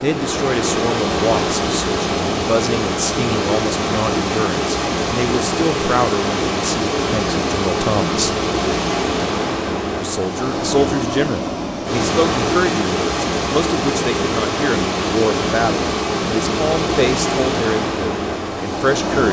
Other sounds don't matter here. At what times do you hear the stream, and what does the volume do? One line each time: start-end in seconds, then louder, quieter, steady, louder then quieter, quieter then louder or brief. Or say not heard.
0.0-19.2 steady.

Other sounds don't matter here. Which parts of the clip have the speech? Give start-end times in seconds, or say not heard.
0.0-8.3, 10.0-19.2.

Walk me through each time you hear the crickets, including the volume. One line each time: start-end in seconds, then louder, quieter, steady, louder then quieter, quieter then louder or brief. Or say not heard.
not heard.